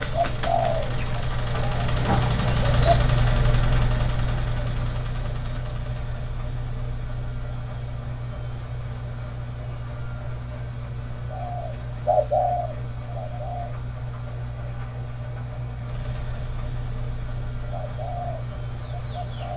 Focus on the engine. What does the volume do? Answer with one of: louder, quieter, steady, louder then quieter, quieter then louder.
quieter.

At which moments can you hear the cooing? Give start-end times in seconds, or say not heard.
0.0-3.0, 11.2-13.7, 17.7-19.5.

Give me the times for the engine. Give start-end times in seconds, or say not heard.
0.0-19.5.